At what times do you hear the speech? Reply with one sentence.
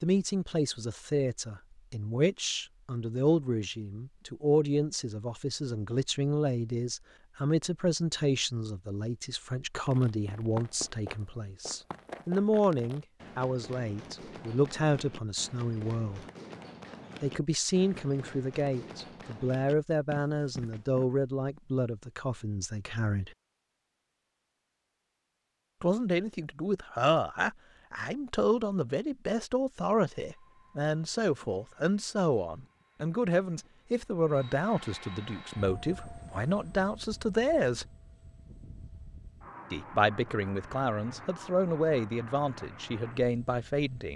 You can hear the speech from 0.0 to 16.2 s, from 17.2 to 23.3 s, from 25.8 to 37.9 s and from 39.7 to 44.1 s.